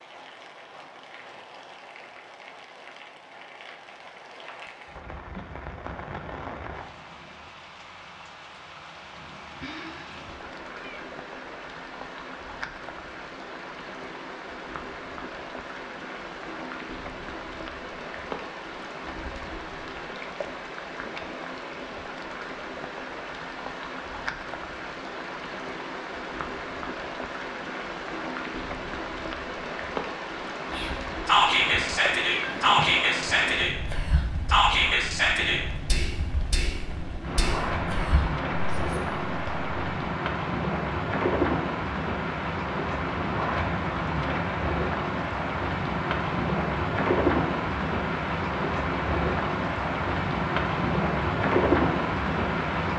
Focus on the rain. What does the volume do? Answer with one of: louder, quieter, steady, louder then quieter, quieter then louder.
louder.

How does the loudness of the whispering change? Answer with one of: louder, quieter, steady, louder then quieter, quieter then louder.
quieter.